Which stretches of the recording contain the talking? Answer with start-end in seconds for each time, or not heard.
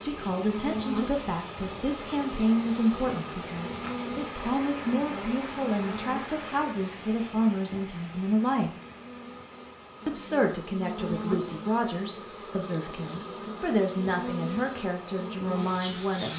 0.0-8.7, 10.1-16.3.